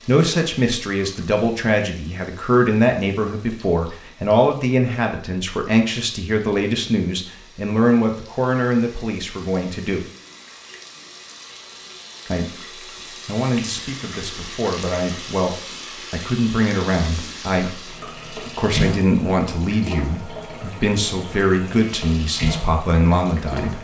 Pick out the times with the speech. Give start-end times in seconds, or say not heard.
0.1-10.1, 12.2-23.7.